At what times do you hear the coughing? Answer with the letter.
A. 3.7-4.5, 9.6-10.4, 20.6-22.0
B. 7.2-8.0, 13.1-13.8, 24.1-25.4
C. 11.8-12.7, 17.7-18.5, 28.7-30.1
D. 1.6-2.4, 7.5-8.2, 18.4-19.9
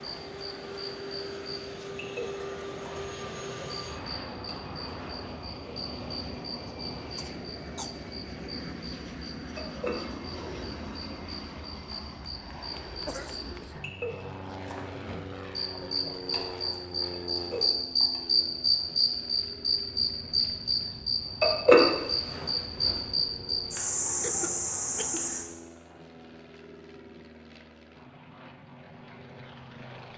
B.